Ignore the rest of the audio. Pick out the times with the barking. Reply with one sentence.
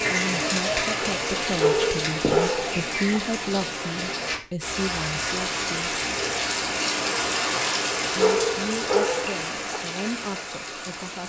The barking can be heard from 1.4 to 3.2 s and from 8.0 to 9.8 s.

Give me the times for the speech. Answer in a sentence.
You can hear the speech from 0.1 to 6.0 s and from 8.2 to 11.2 s.